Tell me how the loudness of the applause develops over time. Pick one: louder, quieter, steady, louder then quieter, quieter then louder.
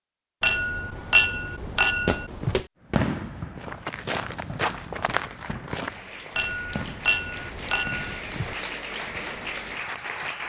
louder.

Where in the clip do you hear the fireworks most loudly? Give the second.
3 s.